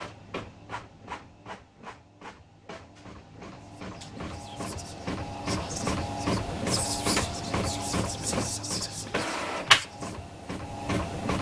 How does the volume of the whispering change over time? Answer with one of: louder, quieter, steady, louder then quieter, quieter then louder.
louder.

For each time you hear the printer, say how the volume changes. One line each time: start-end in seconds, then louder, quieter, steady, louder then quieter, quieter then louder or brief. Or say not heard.
0.0-11.3 louder.